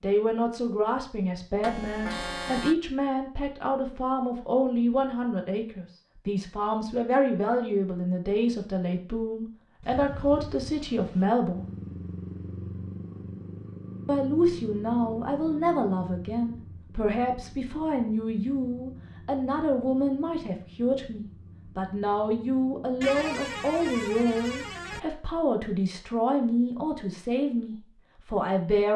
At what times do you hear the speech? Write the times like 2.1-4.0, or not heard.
0.0-11.7, 14.1-28.9.